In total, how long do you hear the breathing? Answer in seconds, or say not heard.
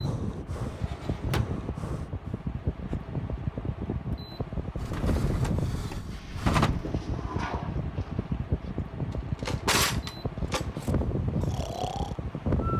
5 s.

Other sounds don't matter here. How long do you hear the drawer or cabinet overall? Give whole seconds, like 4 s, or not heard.
5 s.